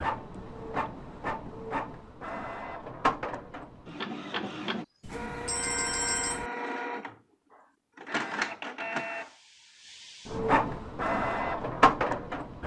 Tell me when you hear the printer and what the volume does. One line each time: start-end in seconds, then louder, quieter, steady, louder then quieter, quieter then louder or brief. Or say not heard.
0.0-12.6 louder.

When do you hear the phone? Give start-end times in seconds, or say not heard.
5.0-6.5.